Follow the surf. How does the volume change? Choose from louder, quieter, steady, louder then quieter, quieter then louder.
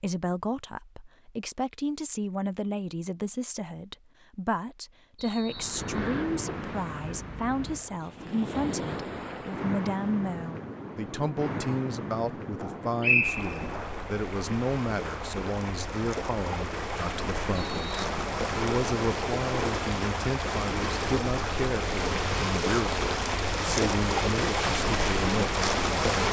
louder.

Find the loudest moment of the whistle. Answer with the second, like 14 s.
13 s.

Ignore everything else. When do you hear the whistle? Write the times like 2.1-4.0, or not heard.
5.2-6.3, 13.0-13.8, 17.6-18.1.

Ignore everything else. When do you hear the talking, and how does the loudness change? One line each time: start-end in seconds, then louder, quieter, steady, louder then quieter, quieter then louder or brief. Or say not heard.
0.0-26.1 steady.